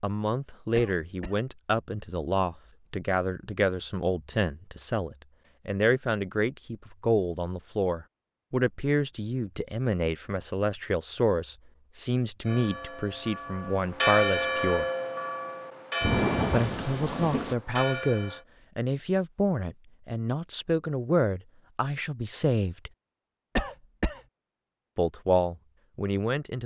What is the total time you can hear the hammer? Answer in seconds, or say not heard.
not heard.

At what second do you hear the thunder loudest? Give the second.
16 s.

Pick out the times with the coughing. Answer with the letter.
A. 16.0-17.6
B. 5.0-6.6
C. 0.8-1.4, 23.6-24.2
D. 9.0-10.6
C.